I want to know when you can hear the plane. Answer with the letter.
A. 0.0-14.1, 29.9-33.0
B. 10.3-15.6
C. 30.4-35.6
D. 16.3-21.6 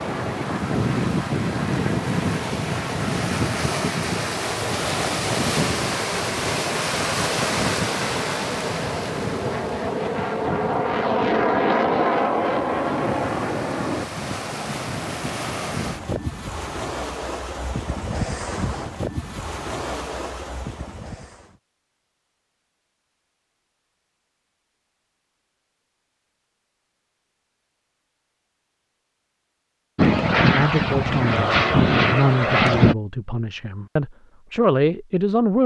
A.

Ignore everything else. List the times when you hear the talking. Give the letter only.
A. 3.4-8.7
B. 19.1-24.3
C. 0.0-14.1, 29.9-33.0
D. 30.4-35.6
D.